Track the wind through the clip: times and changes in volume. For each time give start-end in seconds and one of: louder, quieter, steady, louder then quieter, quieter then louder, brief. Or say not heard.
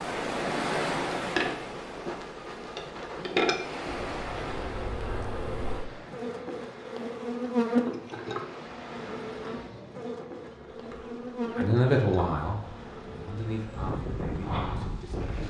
0.0-15.4 quieter then louder.